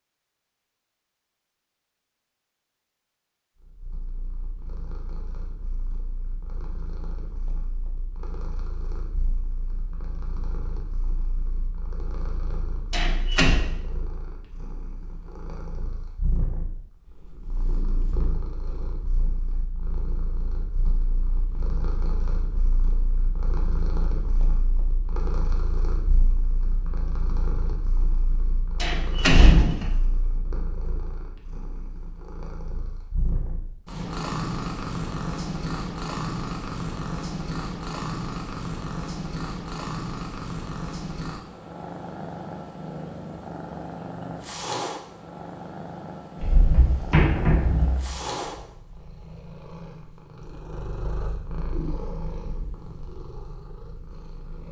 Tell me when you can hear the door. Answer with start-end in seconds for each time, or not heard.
12.9-13.6, 28.8-29.9, 46.4-48.2.